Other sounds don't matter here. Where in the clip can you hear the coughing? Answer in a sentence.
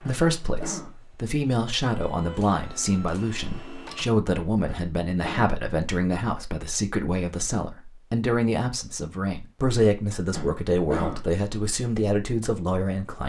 You can hear the coughing from 0.1 to 1.1 s, from 4.7 to 5.5 s and from 10.3 to 11.3 s.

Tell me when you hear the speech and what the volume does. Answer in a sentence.
You can hear the speech from 0.0 to 13.2 s, at a steady volume.